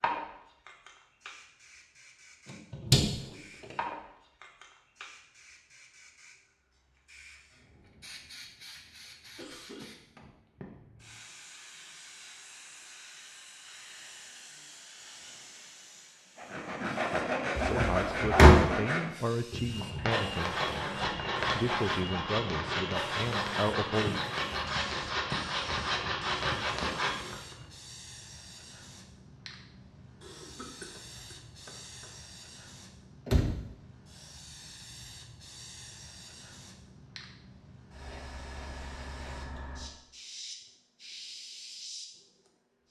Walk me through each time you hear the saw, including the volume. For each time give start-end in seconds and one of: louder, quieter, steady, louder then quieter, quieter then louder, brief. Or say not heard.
16.4-27.6 steady.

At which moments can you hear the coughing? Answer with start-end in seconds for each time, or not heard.
9.1-9.8, 30.2-32.1.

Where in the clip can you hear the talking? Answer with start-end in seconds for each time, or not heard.
17.6-20.6, 21.5-24.1.